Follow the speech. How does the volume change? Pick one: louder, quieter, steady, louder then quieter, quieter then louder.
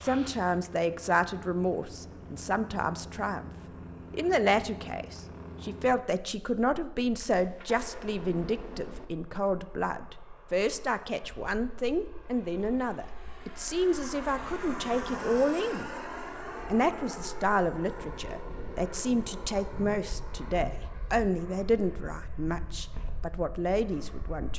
steady.